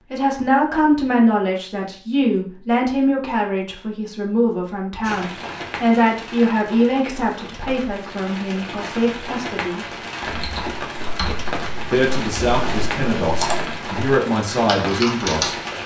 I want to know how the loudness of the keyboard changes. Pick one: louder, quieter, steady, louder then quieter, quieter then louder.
louder.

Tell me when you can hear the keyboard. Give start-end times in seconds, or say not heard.
10.2-15.7.